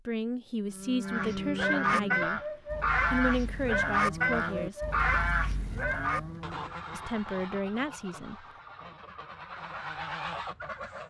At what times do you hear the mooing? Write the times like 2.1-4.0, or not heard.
0.7-6.8.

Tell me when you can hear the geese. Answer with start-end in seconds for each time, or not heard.
1.1-11.0.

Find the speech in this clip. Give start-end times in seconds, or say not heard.
0.1-2.4, 3.1-4.8, 6.9-8.4.